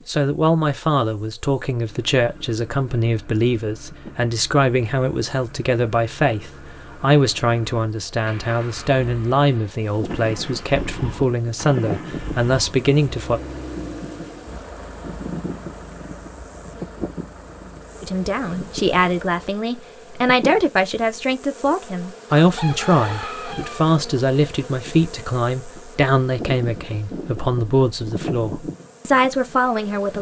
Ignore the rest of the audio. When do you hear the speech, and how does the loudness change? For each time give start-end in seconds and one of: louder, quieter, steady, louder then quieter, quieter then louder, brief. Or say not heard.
0.1-13.4 steady
18.0-30.1 steady.